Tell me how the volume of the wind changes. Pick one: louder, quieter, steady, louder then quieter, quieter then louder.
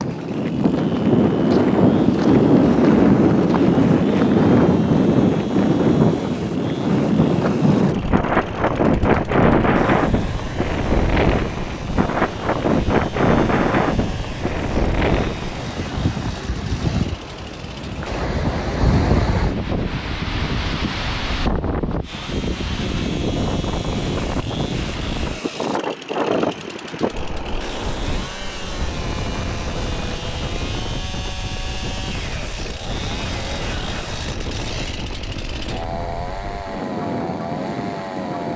quieter.